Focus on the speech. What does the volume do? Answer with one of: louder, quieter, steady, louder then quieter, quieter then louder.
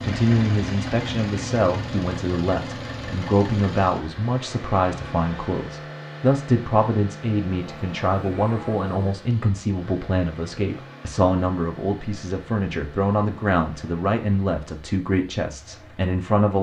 steady.